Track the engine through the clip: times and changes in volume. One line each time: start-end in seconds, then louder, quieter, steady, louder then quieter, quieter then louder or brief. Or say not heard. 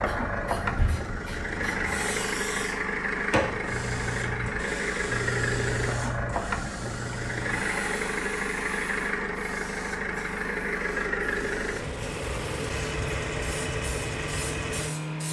0.0-15.2 steady.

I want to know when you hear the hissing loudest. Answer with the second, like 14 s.
4 s.